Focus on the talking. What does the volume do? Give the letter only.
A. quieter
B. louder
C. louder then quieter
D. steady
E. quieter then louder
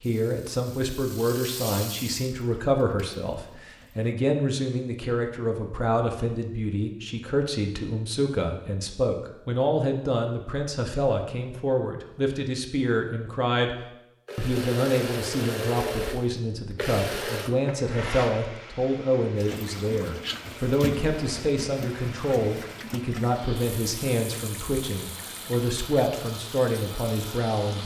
D.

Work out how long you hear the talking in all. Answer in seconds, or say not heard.
27 s.